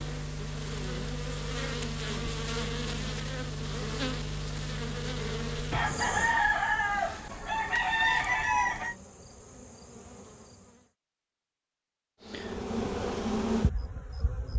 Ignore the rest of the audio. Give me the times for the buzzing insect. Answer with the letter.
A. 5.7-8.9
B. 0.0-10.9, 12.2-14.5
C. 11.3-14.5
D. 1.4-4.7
B.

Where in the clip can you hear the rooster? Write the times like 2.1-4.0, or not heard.
5.7-8.9.